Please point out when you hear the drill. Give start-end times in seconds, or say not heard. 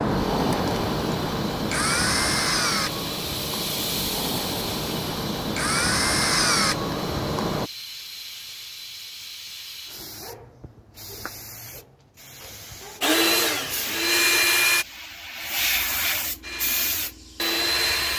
0.0-7.7, 13.0-14.8, 16.4-18.1.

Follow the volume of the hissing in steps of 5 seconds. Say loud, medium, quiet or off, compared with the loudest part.
loud, medium, medium, loud.